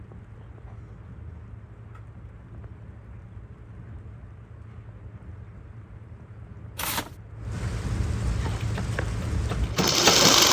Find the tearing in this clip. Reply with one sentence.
You can hear the tearing from 6.8 to 7.2 s.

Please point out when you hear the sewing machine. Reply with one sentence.
You can hear the sewing machine from 8.3 to 10.4 s.